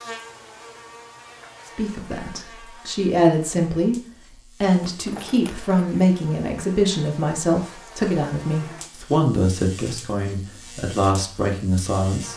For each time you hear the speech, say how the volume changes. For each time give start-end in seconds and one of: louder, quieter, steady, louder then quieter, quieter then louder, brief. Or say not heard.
1.8-4.0 brief
4.6-12.3 steady.